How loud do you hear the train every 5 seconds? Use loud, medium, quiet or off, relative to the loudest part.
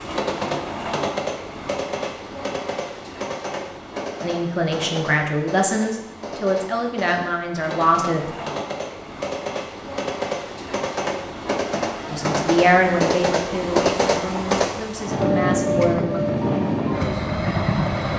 medium, medium, loud, loud.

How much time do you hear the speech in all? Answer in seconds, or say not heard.
8 s.